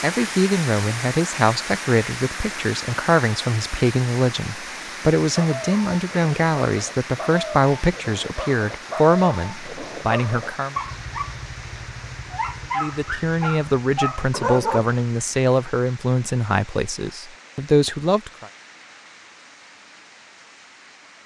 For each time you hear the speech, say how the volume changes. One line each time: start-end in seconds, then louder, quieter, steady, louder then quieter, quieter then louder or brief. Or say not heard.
0.0-10.8 steady
12.8-18.5 steady.